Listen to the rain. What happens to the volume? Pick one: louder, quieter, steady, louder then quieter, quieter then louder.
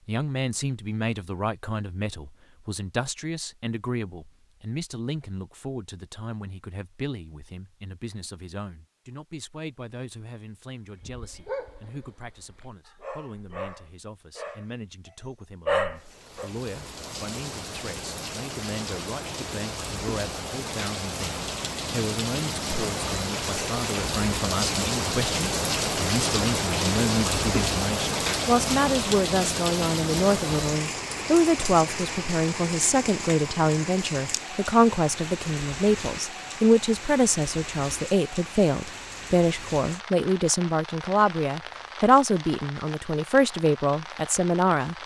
louder then quieter.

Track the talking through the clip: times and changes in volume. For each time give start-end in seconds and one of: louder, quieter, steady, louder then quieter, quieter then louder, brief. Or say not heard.
0.1-45.0 quieter then louder.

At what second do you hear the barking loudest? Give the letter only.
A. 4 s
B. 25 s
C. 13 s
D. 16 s
D.